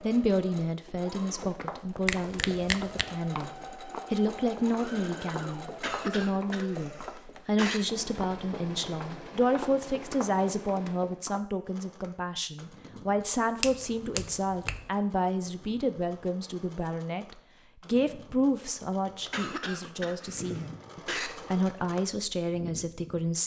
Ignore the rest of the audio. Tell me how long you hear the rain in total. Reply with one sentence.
The rain can't be heard in this clip.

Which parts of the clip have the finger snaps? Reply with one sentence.
You can hear the finger snaps from 2.0 to 3.0 s and from 13.6 to 14.9 s.